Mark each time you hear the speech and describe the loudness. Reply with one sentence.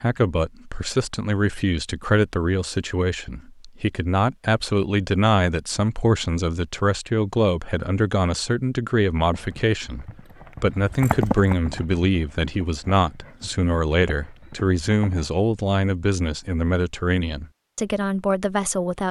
You can hear the speech from 0.0 to 19.0 s, at a steady volume.